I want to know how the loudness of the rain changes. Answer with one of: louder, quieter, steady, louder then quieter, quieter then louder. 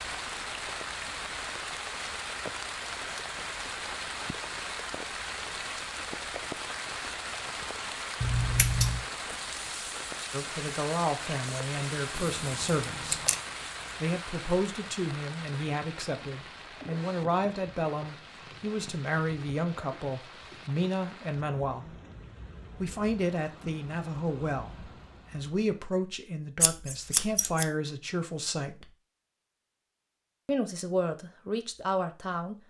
quieter.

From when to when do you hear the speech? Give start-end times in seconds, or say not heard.
10.3-13.2, 14.0-21.9, 22.8-28.9, 30.4-32.5.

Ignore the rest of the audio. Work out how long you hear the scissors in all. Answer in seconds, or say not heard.
3 s.